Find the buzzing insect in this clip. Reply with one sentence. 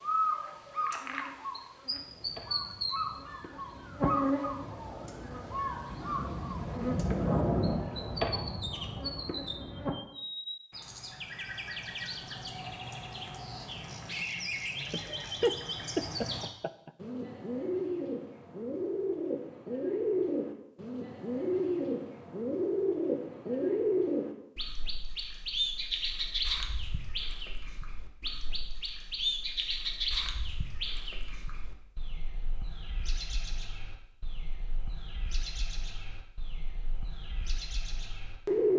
You can hear the buzzing insect from 0.0 to 9.9 s.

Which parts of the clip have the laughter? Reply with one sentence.
You can hear the laughter from 14.9 to 16.9 s.